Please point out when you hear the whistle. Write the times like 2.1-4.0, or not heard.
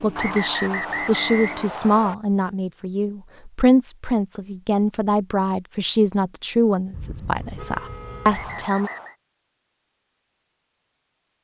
0.1-2.1, 8.2-9.2.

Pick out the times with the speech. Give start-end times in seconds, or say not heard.
0.0-8.9.